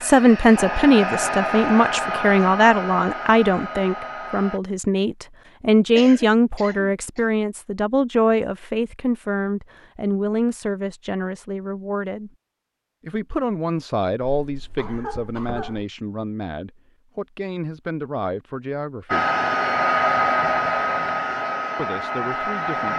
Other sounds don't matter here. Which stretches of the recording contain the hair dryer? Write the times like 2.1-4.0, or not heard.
0.0-4.6, 19.1-22.9.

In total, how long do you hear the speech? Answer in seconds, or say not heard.
20 s.